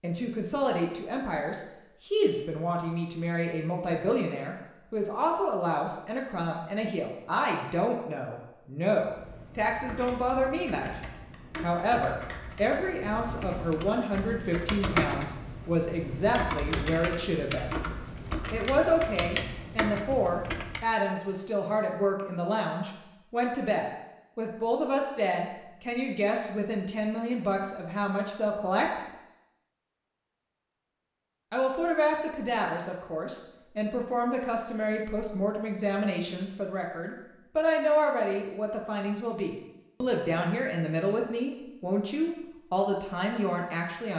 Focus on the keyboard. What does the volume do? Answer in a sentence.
The loudness of the keyboard goes up.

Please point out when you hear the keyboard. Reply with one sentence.
The keyboard can be heard from 9.1 to 20.9 s.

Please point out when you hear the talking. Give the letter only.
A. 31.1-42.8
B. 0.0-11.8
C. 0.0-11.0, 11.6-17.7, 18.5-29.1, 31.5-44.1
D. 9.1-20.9
C.